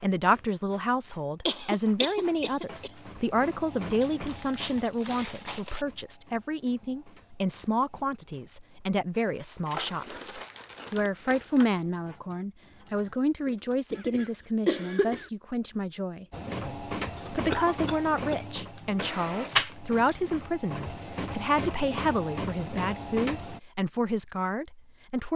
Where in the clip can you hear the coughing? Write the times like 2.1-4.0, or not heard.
1.4-2.9, 13.4-15.3, 17.1-18.4.